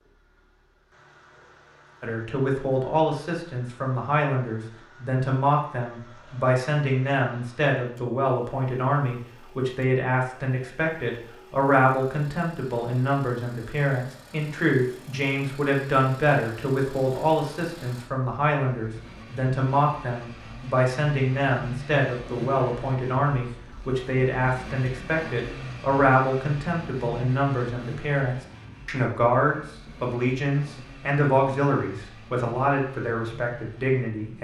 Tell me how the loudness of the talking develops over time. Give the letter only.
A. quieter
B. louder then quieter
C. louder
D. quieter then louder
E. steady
E.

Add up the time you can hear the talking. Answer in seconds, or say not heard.
32 s.